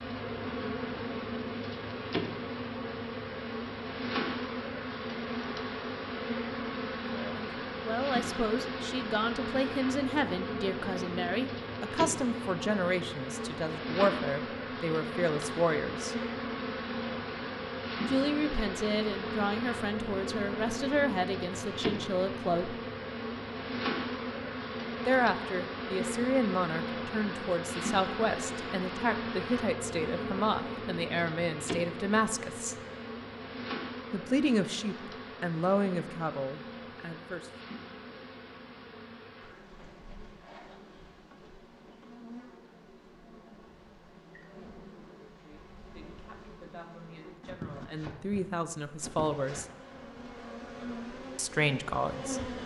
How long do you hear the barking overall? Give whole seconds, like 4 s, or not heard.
not heard.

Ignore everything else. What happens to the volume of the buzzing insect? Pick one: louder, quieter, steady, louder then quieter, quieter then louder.
quieter.